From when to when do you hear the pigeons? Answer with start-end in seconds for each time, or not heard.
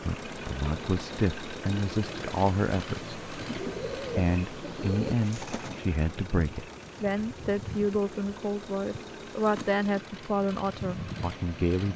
3.4-5.9.